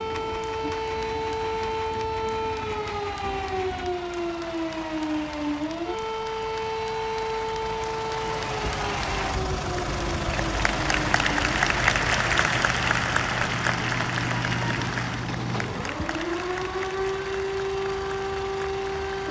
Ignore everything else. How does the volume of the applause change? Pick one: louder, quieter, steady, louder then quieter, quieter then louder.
louder then quieter.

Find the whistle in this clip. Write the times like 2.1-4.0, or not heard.
not heard.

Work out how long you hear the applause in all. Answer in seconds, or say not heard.
19 s.